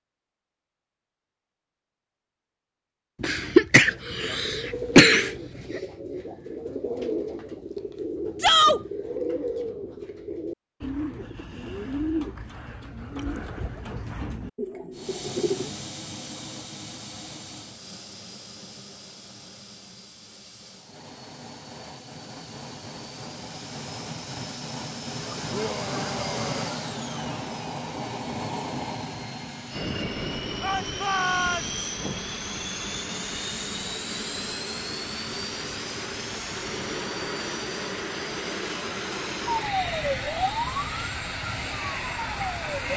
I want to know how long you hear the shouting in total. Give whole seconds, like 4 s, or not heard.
3 s.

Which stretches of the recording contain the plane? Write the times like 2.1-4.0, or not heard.
14.9-42.9.